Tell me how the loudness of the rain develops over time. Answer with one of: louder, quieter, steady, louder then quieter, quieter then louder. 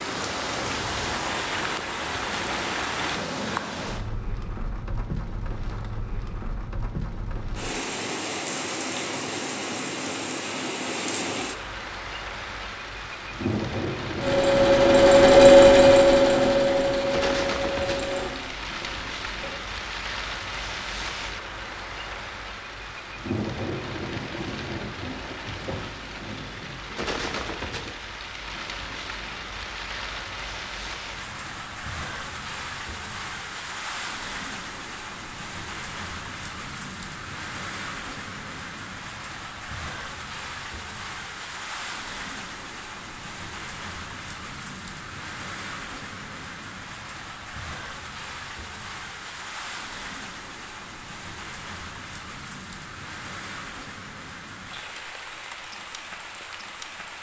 quieter.